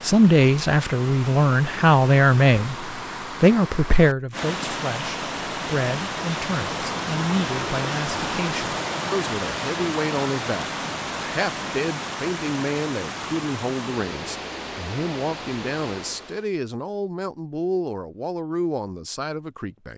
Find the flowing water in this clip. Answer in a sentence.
You can hear the flowing water from 0.0 to 16.5 s.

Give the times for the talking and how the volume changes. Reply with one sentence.
The talking can be heard from 0.0 to 19.9 s, getting quieter.